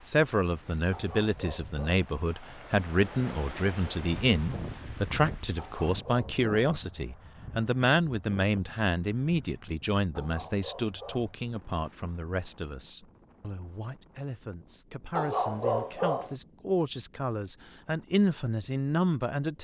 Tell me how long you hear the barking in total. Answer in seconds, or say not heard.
5 s.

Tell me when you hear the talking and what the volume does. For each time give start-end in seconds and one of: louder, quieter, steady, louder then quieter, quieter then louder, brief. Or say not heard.
0.1-19.6 quieter then louder.